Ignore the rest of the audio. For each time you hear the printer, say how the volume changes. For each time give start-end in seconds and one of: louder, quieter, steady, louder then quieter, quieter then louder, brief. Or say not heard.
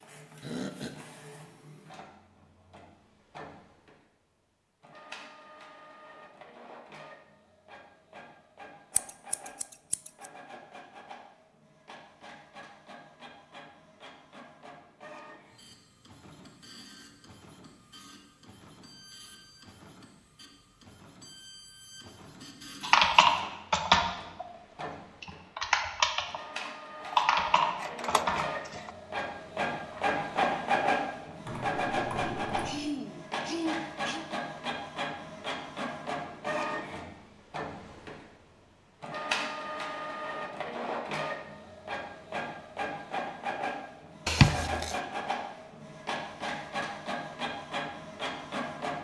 0.0-48.9 louder.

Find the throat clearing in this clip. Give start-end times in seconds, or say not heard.
0.4-1.0, 32.6-34.2.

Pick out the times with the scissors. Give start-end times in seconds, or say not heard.
8.9-10.3, 27.0-28.9, 44.2-45.0.